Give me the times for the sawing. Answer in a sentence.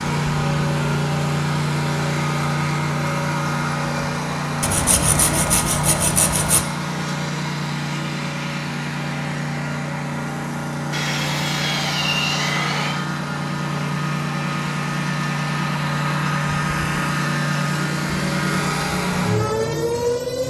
You can hear the sawing from 4.6 to 6.7 s and from 10.9 to 13.0 s.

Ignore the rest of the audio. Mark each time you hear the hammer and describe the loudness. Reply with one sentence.
The hammer can't be heard in this clip.